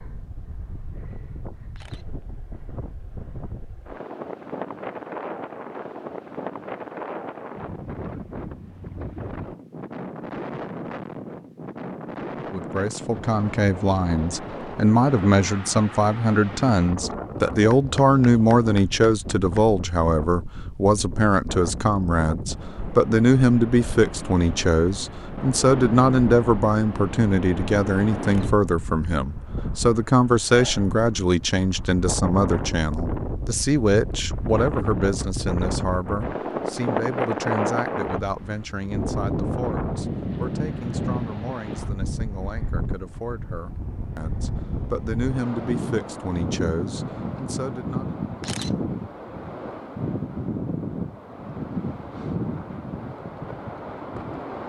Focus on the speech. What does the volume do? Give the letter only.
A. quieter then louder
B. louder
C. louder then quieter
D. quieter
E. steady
D.